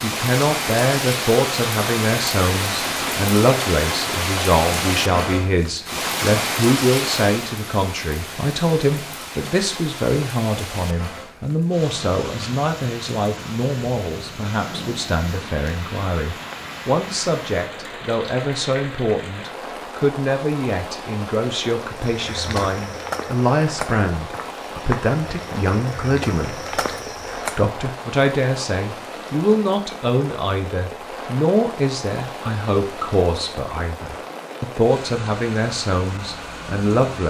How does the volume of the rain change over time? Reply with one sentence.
The volume of the rain goes down.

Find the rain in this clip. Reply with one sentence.
You can hear the rain from 0.0 to 37.2 s.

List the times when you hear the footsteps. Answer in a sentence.
The footsteps can be heard from 21.9 to 27.6 s.